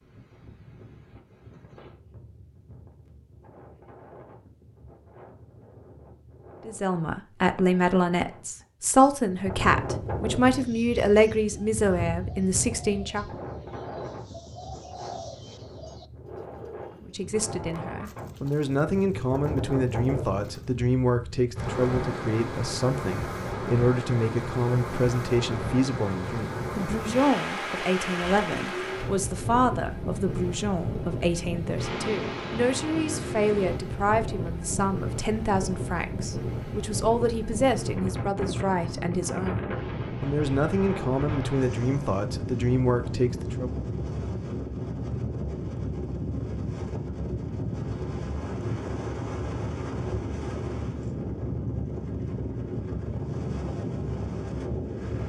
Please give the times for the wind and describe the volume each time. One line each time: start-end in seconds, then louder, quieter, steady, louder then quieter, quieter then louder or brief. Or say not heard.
0.0-55.2 louder.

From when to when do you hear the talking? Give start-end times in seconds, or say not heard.
6.7-13.2, 17.0-43.8.